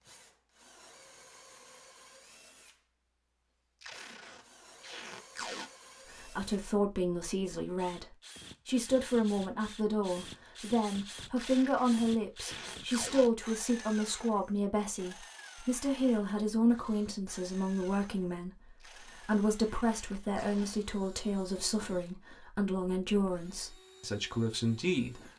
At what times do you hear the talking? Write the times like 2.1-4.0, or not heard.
6.1-25.3.